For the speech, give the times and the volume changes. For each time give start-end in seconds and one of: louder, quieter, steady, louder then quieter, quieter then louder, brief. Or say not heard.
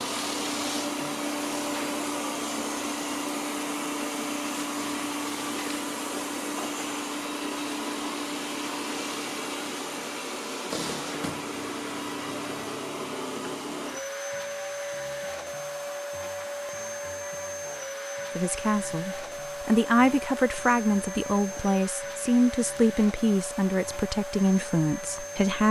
18.4-25.6 steady.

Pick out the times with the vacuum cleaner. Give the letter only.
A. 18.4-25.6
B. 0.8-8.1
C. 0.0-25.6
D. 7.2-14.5
C.